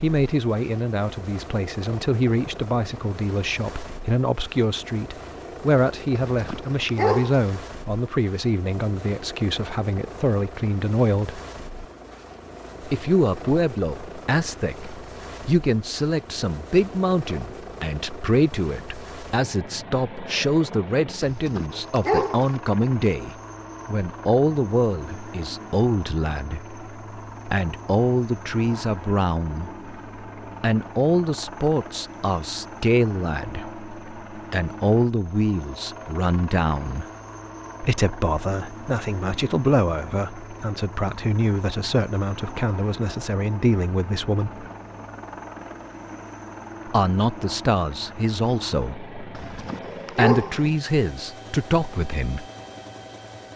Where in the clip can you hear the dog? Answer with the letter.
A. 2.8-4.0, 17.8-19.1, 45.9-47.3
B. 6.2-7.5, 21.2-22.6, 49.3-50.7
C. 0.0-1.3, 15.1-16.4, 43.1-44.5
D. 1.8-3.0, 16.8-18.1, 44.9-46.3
B.